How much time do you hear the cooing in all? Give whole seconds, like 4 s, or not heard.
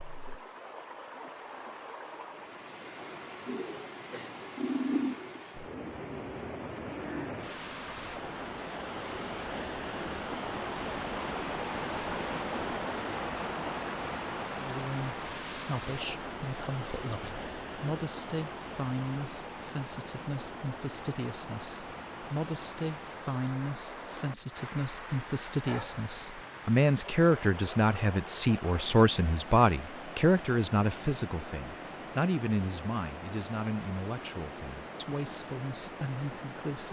4 s.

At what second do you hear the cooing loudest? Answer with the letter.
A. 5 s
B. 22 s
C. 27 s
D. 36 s
A.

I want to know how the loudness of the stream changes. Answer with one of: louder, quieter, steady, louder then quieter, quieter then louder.
louder then quieter.